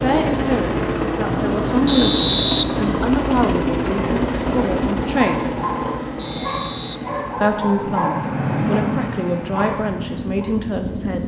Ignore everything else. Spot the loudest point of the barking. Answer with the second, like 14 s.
9 s.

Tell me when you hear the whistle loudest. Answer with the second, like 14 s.
2 s.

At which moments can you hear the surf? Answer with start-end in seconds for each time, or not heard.
not heard.